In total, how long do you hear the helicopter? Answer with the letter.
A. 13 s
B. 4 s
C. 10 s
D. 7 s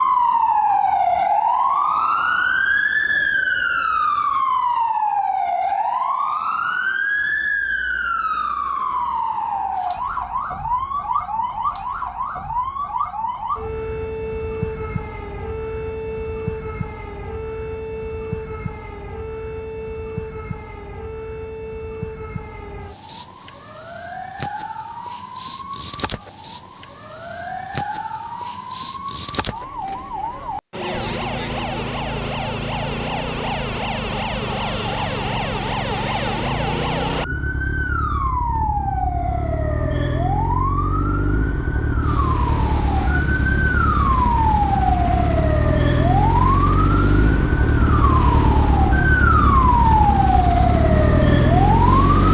C.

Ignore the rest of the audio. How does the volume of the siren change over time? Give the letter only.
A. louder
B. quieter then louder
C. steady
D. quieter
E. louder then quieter
B.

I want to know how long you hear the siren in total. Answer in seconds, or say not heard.
52 s.